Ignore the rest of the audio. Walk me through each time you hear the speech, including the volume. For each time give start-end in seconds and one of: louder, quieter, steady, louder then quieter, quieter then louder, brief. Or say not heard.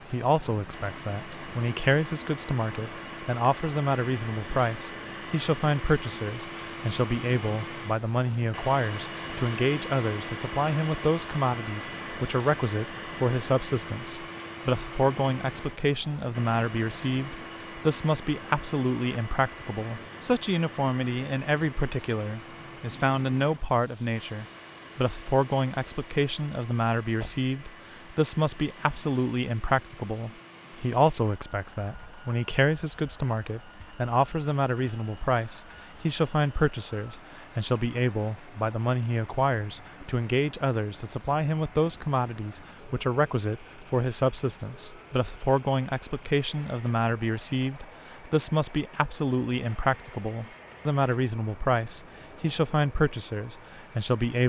0.1-54.4 steady.